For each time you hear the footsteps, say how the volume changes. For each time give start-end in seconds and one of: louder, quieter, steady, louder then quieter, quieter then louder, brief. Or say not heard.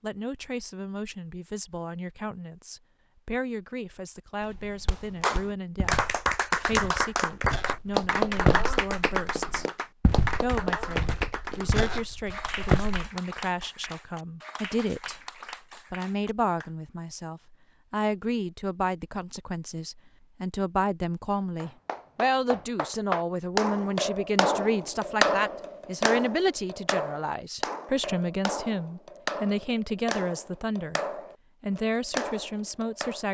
4.4-13.1 louder then quieter.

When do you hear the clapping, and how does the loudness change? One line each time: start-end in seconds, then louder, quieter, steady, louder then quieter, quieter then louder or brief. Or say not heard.
4.9-16.7 quieter
21.6-33.2 quieter.